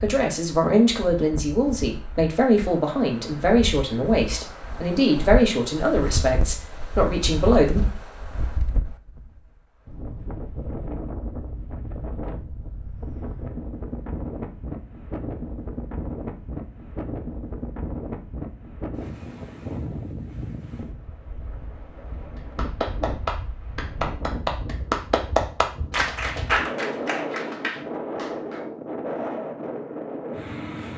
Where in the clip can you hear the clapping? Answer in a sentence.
The clapping can be heard from 22.4 to 28.6 s.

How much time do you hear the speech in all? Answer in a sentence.
The speech can be heard for 8 seconds in total.